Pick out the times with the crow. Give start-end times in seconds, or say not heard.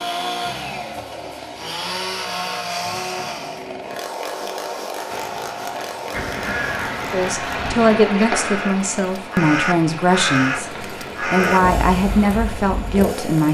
6.1-13.1.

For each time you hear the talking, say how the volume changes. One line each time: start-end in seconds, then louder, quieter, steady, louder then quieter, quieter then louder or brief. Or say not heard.
7.1-13.4 steady.